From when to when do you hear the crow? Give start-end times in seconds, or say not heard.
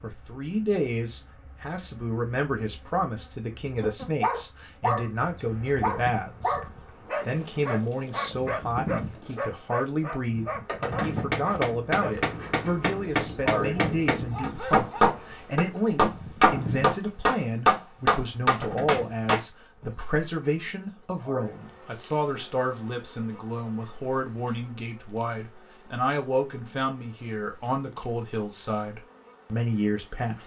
not heard.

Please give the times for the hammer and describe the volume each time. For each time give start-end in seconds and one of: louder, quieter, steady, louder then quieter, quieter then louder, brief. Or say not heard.
11.1-19.4 louder.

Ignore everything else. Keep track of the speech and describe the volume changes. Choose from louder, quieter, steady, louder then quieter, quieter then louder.
steady.